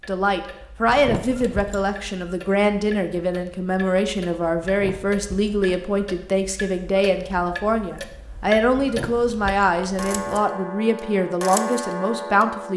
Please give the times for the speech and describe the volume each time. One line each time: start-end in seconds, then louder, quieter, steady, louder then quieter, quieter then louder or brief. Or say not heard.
0.1-12.7 steady.